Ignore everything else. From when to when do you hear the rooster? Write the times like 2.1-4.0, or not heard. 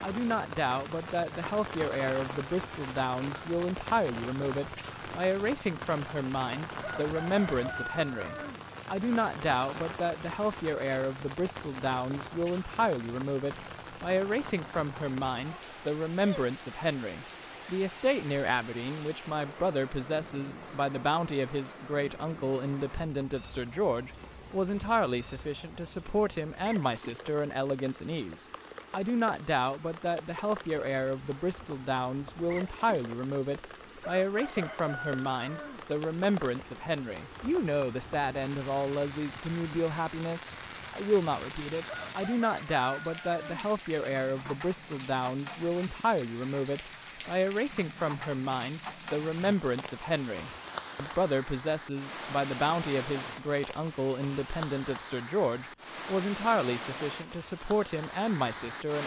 6.8-8.7, 34.0-35.9, 41.9-43.7.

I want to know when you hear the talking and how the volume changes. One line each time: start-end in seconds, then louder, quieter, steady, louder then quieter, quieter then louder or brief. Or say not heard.
0.0-59.0 steady.